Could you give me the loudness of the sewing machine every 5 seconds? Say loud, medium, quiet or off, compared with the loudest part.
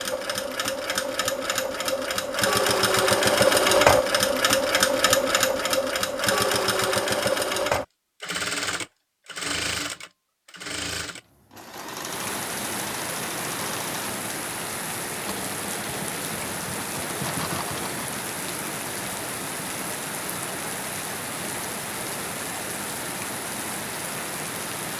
loud, loud, quiet, quiet, off.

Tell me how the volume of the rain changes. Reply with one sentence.
The loudness of the rain stays about the same.